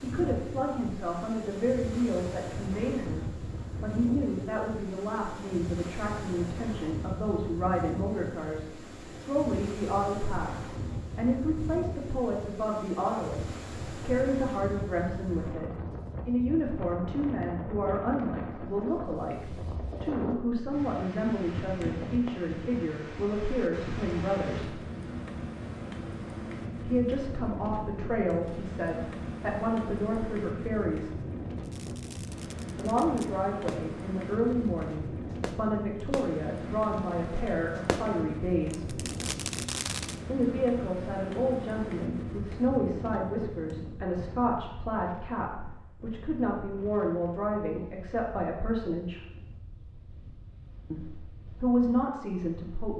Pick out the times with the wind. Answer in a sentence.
The wind can be heard from 0.0 to 52.9 s.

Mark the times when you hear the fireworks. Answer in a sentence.
The fireworks can be heard from 31.6 to 40.1 s.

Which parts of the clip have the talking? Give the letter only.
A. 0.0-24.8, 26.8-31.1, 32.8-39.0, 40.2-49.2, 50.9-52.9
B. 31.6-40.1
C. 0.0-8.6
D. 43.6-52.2
A.